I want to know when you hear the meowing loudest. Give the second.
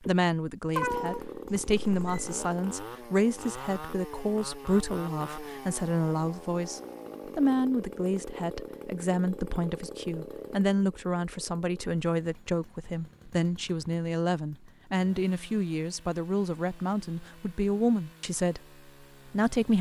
1 s.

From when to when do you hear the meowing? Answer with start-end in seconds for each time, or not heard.
0.7-2.4.